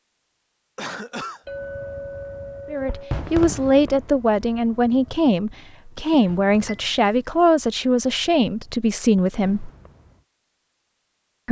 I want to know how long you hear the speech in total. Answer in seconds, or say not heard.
7 s.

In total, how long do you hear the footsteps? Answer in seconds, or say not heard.
not heard.